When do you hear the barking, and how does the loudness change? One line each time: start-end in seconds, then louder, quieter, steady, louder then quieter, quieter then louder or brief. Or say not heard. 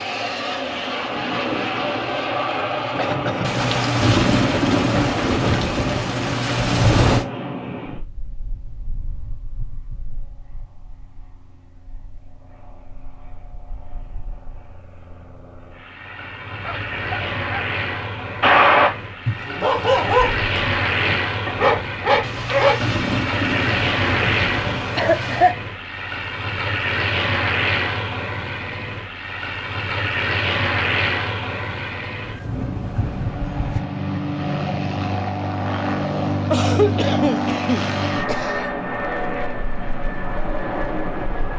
16.6-17.6 brief
18.4-22.8 quieter then louder.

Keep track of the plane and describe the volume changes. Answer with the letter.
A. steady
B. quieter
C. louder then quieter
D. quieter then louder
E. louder
D.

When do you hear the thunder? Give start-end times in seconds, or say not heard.
3.4-7.2, 22.2-25.6.